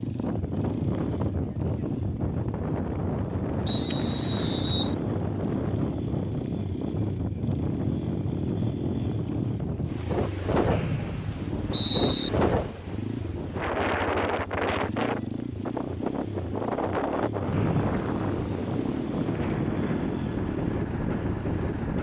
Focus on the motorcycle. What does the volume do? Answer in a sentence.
The loudness of the motorcycle stays about the same.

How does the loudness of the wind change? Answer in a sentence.
The volume of the wind stays about the same.